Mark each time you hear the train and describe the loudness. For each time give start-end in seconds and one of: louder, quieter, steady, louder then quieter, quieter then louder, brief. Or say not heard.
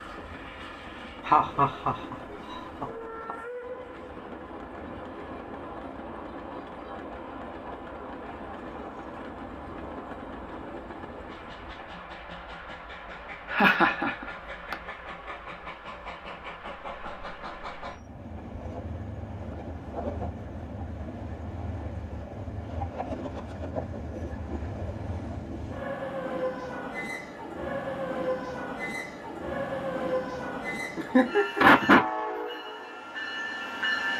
0.0-34.1 louder.